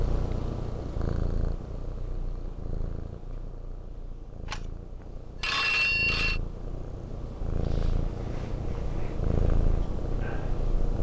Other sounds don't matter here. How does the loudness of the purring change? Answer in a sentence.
The loudness of the purring goes down, then up.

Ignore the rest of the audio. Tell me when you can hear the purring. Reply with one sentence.
The purring can be heard from 0.0 to 10.9 s.